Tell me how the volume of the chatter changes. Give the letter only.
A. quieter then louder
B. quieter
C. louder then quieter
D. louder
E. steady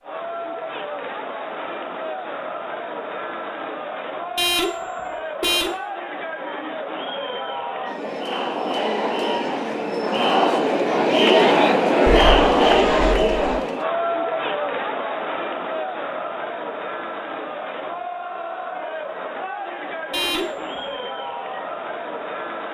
C.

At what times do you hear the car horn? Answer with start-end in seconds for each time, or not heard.
4.3-5.7, 12.1-13.6, 20.1-20.8.